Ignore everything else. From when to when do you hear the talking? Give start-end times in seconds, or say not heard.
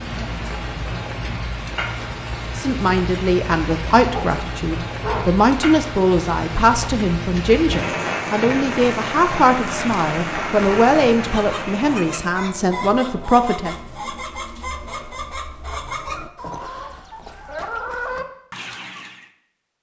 2.5-13.7.